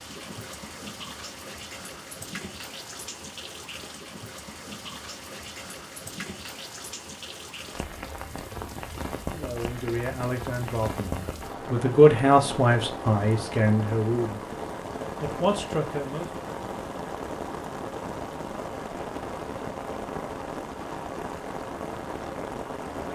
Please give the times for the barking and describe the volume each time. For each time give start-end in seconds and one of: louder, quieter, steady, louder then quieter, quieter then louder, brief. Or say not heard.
not heard.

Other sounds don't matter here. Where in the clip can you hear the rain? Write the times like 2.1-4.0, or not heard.
0.0-23.1.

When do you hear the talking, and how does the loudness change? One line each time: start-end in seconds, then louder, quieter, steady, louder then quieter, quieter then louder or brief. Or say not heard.
9.3-14.4 louder then quieter
15.2-16.3 brief.